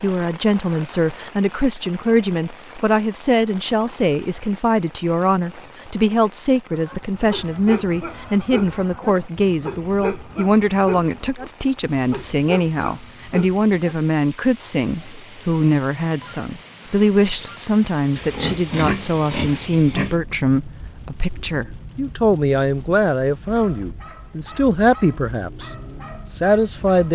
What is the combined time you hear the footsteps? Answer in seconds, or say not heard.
not heard.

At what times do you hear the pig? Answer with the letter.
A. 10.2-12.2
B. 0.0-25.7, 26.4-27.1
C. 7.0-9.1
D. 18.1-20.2
D.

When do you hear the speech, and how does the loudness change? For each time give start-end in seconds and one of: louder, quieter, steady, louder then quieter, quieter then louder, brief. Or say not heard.
0.0-25.7 steady
26.4-27.1 brief.